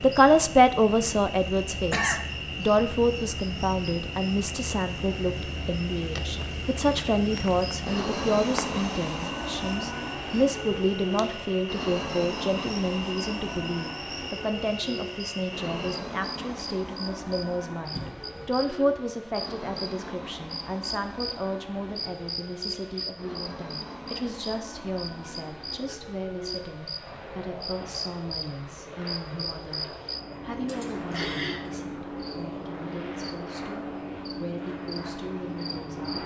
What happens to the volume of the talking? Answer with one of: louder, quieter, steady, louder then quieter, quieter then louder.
quieter.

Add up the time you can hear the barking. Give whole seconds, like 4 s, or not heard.
not heard.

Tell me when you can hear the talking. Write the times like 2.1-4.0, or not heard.
0.0-36.2.